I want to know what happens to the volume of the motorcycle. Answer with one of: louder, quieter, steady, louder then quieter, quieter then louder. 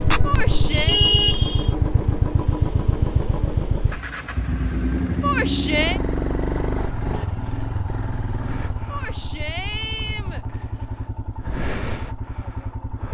quieter.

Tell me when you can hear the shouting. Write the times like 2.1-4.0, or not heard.
0.2-1.0, 5.2-6.0, 8.9-10.4.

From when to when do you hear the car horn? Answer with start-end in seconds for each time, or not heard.
0.7-1.8.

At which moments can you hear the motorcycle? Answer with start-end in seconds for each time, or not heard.
0.0-13.0.